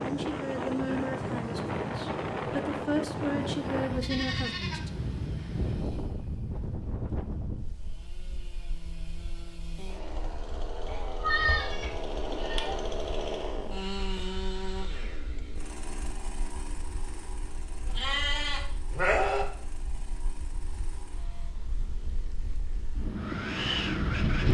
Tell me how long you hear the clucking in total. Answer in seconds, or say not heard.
not heard.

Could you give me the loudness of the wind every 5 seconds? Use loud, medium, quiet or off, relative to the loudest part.
loud, medium, quiet, quiet, loud.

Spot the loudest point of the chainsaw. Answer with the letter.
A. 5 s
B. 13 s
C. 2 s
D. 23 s
B.